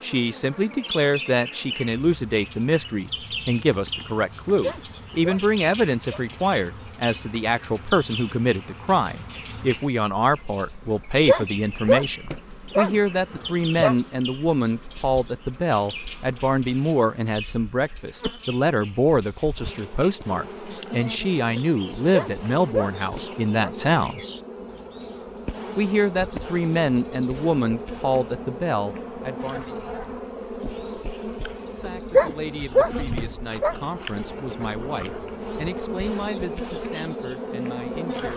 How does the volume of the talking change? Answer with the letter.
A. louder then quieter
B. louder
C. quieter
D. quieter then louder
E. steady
C.